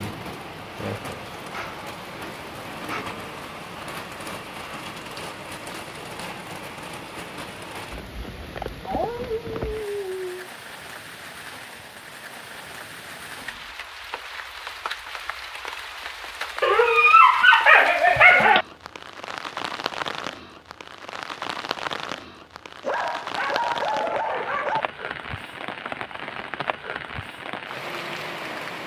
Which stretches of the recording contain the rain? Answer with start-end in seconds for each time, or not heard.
0.0-28.8.